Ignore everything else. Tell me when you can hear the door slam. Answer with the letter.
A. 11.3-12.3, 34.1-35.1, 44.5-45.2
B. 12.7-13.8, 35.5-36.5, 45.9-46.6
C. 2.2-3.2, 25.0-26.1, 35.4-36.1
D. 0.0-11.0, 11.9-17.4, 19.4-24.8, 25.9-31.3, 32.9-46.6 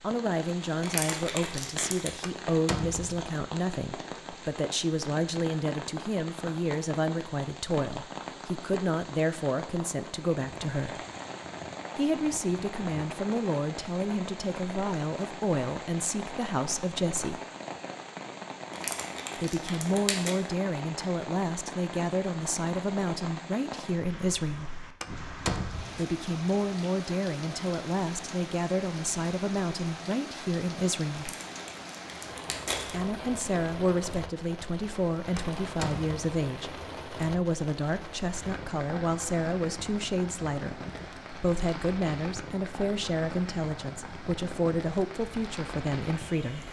C.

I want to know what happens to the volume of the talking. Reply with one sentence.
The volume of the talking stays about the same.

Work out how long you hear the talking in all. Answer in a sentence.
The talking can be heard for 41 seconds in total.